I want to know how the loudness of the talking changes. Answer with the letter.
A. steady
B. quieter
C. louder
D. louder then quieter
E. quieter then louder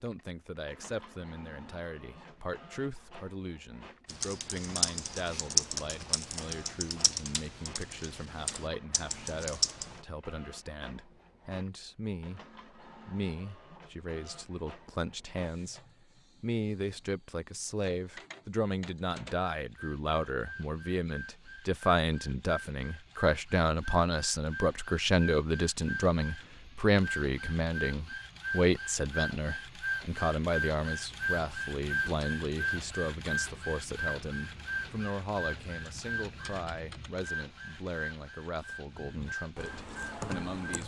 D.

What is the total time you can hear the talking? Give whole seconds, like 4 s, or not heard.
40 s.